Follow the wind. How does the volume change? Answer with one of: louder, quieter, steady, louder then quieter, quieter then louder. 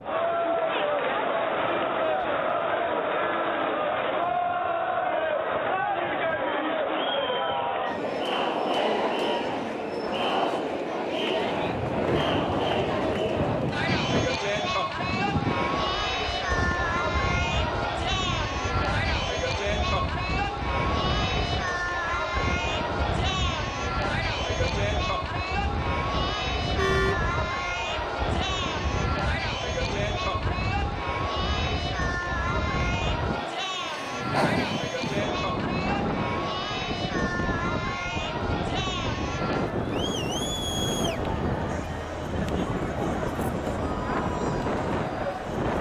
louder.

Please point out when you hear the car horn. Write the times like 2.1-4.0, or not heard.
26.8-27.3.